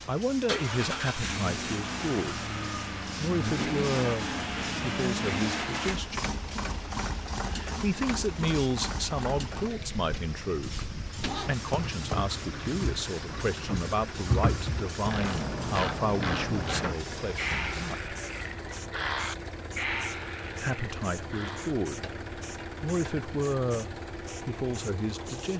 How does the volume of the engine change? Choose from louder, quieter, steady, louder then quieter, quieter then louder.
quieter.